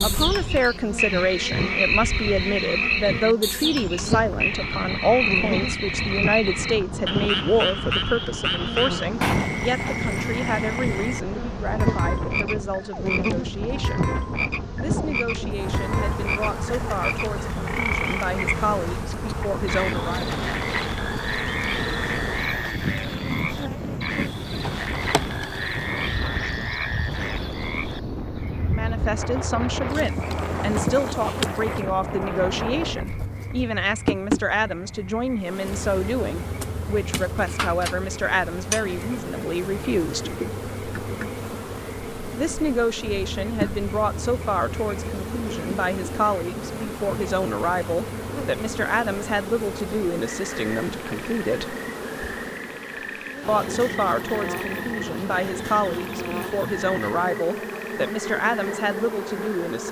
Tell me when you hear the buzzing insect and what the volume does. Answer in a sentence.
You can hear the buzzing insect from 0.0 to 59.8 s, at a steady volume.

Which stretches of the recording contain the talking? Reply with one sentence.
The talking can be heard from 0.0 to 14.1 s, from 14.8 to 20.2 s, from 28.7 to 40.4 s, from 42.4 to 51.8 s and from 53.5 to 59.8 s.